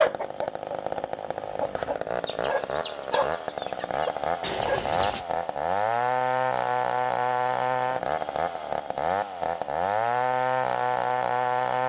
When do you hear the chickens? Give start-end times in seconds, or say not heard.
0.0-5.0.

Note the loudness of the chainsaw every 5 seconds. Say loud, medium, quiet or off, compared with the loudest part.
medium, loud, loud.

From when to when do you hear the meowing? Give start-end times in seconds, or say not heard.
4.4-5.2.